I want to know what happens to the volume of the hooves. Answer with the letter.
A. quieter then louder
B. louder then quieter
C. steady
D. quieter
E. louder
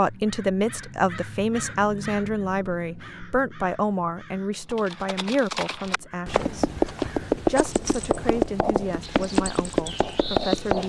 E.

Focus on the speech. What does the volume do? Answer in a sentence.
The volume of the speech goes down.